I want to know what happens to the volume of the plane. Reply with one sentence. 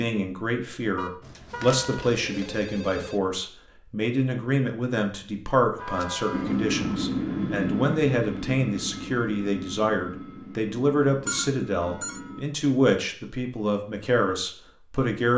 The volume of the plane goes down.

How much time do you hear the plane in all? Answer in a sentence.
The plane can be heard for 6 seconds in total.